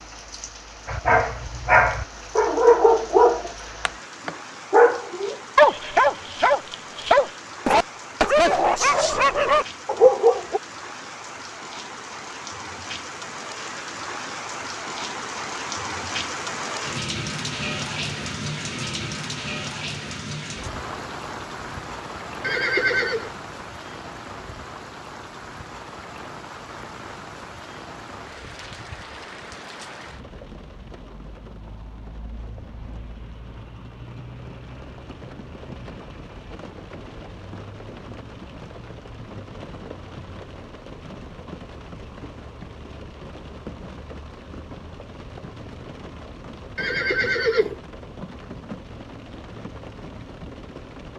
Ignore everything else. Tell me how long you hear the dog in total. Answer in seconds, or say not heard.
10 s.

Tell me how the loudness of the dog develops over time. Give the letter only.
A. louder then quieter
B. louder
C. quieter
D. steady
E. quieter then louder
D.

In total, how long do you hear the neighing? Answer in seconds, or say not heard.
2 s.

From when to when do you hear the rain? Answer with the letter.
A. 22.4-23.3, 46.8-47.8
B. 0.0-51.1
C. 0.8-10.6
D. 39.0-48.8
B.